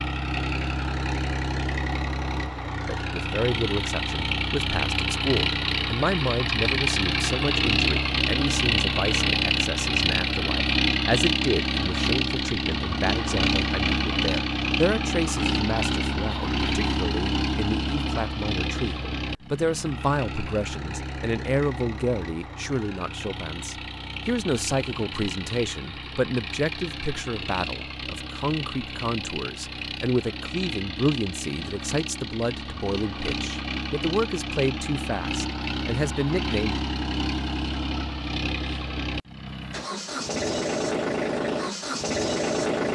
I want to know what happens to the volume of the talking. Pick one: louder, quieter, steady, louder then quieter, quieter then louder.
steady.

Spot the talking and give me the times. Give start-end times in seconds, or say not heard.
3.0-36.8.